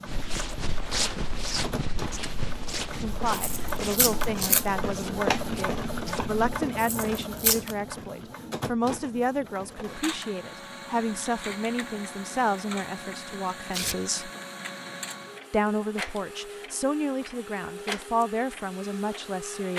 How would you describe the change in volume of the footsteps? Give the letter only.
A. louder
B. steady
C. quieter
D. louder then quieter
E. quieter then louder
C.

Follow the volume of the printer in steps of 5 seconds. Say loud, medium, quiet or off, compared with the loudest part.
loud, loud, medium, medium.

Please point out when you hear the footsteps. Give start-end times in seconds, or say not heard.
0.1-6.5.